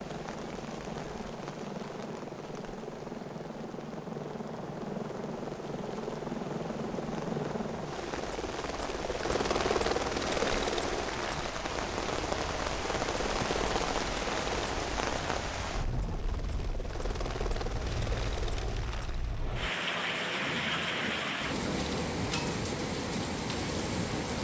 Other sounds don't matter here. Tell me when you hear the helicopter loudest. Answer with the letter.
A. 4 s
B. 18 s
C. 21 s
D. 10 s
D.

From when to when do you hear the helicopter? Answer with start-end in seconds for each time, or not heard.
0.0-21.6.